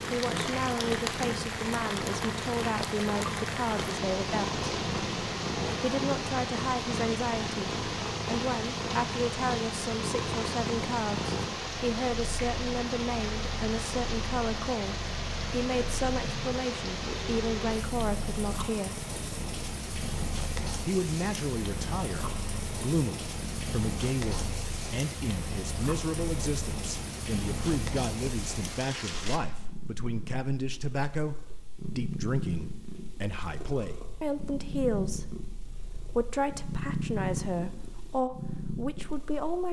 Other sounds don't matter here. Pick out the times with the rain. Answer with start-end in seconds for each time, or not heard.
0.0-29.4.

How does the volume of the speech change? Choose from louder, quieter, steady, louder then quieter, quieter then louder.
steady.